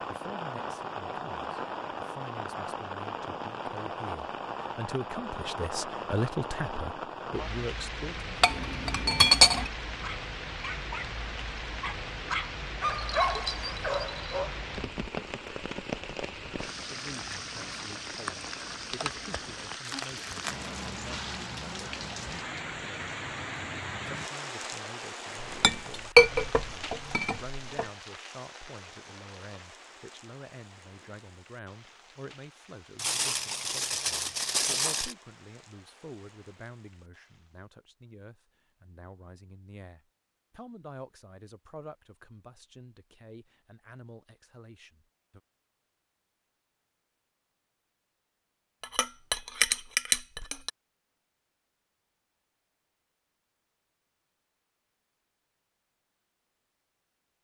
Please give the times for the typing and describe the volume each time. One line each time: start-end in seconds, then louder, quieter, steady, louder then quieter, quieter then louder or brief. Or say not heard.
not heard.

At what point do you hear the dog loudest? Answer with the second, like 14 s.
13 s.